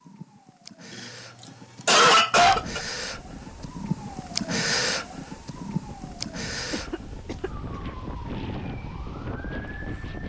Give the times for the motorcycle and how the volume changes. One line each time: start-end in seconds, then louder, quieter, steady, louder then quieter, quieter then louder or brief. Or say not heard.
not heard.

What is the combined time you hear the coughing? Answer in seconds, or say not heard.
3 s.